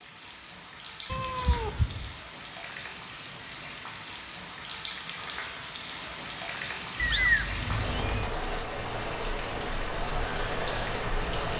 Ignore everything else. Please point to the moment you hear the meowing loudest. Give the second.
7 s.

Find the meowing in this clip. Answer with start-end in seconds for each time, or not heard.
1.1-2.1, 7.0-8.3.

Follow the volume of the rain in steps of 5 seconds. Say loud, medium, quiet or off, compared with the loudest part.
medium, loud, loud.